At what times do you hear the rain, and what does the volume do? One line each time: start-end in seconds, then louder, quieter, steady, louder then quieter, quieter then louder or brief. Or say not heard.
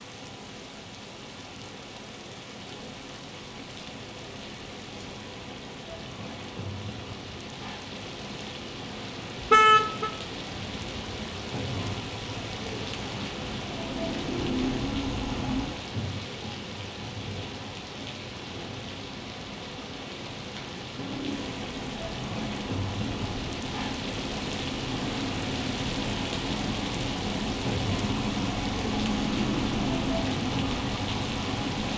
0.0-31.9 louder.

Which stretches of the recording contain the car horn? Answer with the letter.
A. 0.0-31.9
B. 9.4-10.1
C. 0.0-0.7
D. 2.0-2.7
B.